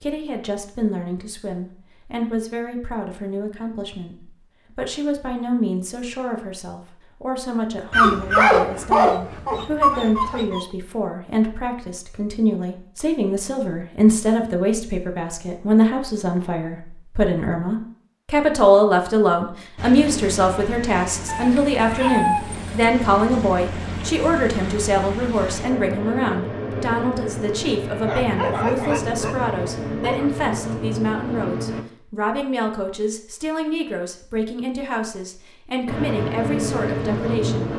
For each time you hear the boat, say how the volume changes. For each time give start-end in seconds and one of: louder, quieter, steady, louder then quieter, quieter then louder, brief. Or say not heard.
19.8-31.9 louder
35.9-37.7 brief.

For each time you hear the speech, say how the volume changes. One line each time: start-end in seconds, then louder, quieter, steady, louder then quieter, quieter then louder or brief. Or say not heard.
0.0-37.7 louder then quieter.